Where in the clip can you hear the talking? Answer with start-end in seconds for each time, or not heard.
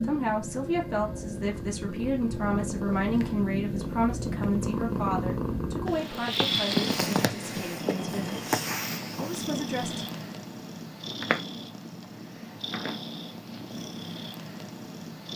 0.0-8.4, 9.2-10.1.